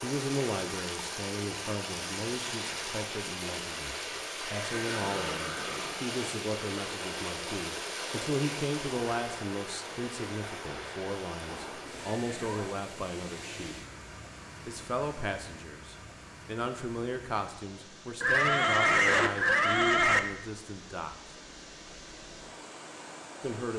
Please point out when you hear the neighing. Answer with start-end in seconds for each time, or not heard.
4.4-6.0, 11.4-12.8, 18.2-20.2.